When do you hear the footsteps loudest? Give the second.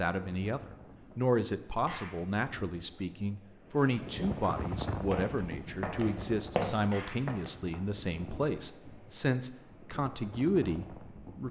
7 s.